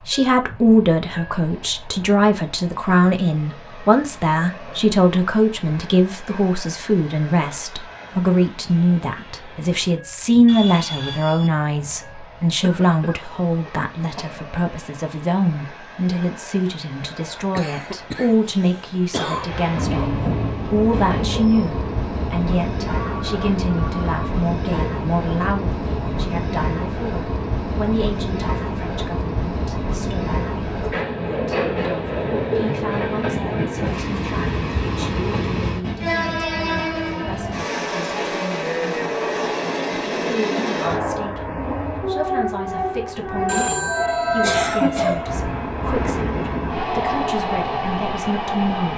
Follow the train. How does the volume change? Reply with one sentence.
The volume of the train goes up.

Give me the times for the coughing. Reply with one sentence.
The coughing can be heard from 12.6 to 14.3 s, from 17.6 to 19.5 s and from 44.4 to 45.3 s.